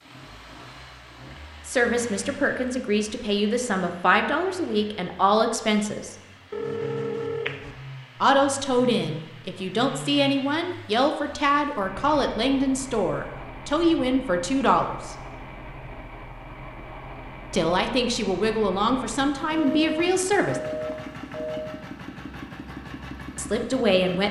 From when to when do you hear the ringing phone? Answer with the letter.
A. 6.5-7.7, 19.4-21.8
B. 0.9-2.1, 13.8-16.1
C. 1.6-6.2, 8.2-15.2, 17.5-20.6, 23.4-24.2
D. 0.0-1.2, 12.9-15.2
A.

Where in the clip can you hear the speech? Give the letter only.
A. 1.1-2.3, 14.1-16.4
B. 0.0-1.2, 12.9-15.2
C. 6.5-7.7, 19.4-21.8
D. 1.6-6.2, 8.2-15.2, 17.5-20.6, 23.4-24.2
D.